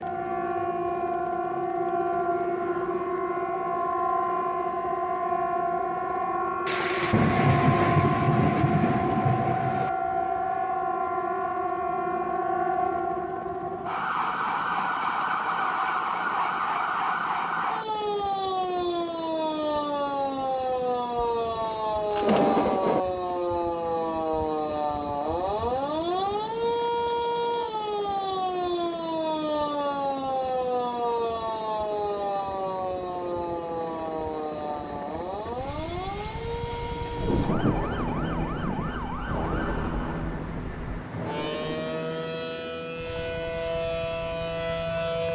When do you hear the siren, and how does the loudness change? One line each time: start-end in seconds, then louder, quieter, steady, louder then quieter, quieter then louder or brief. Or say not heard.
0.0-45.3 quieter.